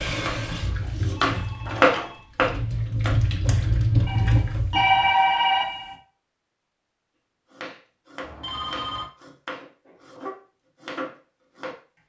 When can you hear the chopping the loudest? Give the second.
2 s.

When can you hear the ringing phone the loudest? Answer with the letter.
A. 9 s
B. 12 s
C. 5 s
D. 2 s
C.